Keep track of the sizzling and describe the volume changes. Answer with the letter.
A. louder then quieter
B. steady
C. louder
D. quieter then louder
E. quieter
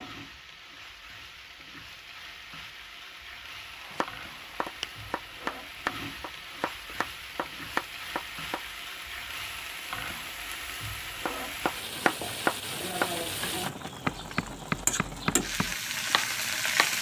C.